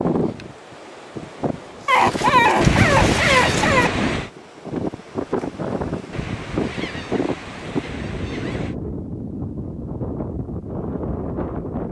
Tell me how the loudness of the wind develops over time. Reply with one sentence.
The volume of the wind stays about the same.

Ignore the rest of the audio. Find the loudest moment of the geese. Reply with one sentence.
The volume of the geese peaks at 3 seconds.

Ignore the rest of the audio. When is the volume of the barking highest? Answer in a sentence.
The volume of the barking peaks at 2 seconds.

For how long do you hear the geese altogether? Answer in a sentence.
The geese can be heard for 4 seconds in total.